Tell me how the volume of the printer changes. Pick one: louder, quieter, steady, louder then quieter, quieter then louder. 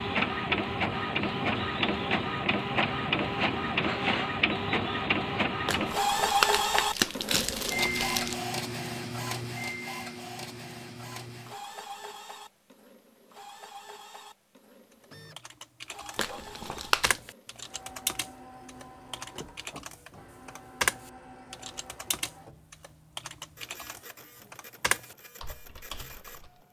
quieter.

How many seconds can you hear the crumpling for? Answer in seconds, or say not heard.
4 s.